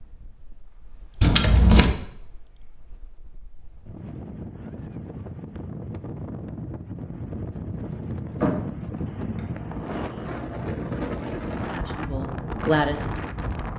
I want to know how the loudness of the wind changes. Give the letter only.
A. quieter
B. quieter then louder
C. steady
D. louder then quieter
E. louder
E.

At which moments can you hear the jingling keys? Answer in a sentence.
You can hear the jingling keys from 1.2 to 1.9 s and from 8.4 to 9.8 s.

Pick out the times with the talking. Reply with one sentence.
You can hear the talking from 11.5 to 13.7 s.